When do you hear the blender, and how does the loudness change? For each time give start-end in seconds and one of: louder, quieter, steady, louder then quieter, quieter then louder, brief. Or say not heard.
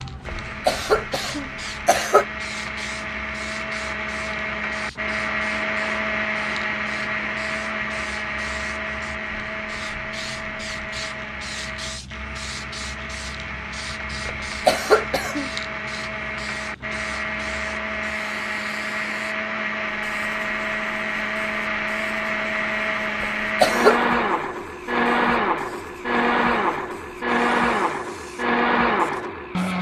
0.1-29.7 louder.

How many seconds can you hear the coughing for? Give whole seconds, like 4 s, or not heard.
4 s.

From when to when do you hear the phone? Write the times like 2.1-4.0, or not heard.
not heard.